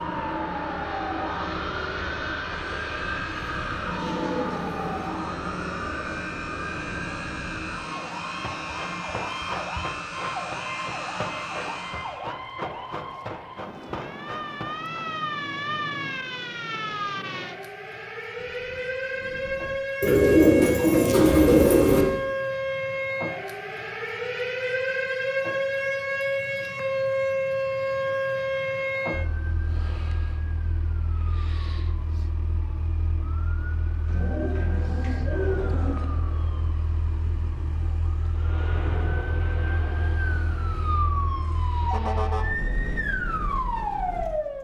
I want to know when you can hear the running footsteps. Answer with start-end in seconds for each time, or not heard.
8.4-15.1.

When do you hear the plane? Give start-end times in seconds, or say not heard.
0.0-12.2, 38.3-41.7.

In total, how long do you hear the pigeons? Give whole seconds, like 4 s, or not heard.
6 s.